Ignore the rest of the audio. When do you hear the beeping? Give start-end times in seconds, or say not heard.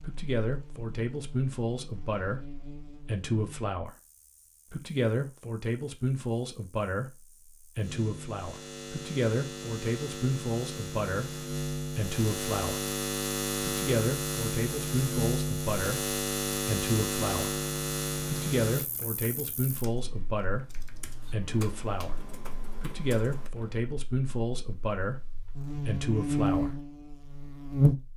not heard.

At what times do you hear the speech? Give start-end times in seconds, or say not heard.
0.0-3.9, 4.7-12.8, 13.6-17.5, 18.2-22.1, 22.8-26.7.